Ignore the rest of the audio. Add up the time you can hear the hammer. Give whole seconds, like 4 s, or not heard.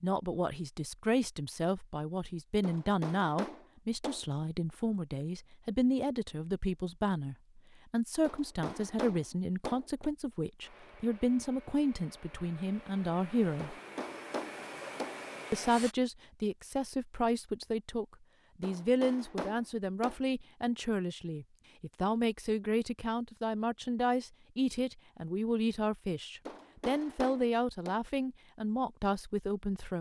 8 s.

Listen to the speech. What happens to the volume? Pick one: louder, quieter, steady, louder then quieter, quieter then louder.
steady.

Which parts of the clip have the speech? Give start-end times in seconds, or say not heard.
0.0-13.8, 15.5-29.9.